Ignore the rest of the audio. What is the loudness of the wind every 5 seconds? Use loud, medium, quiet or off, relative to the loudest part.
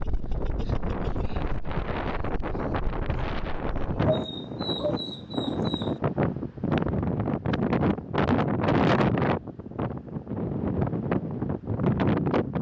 medium, loud, loud.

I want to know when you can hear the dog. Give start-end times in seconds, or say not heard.
4.0-5.9.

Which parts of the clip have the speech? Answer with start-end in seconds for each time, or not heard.
not heard.